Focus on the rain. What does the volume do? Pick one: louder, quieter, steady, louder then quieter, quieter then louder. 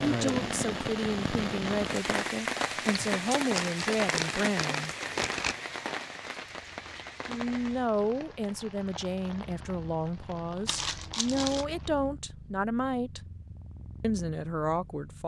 quieter.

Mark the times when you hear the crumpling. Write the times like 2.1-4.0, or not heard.
3.5-5.5, 10.7-11.7.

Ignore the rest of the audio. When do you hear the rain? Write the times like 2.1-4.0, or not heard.
0.0-12.1.